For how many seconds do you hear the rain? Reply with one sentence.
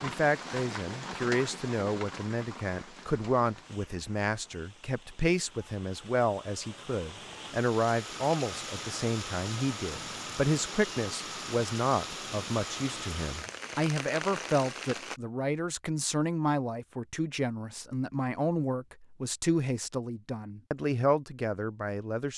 You can hear the rain for 15 seconds altogether.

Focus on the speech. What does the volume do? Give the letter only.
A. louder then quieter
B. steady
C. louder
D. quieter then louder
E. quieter
B.